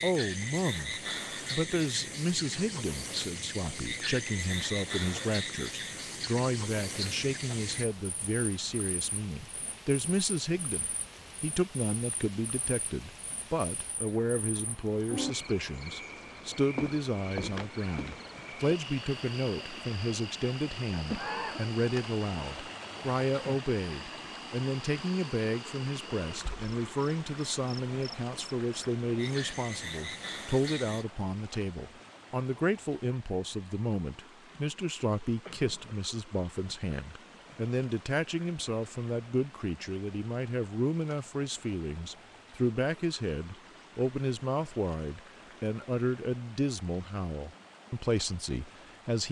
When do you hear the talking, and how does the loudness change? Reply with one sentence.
You can hear the talking from 0.0 to 49.2 s, at a steady volume.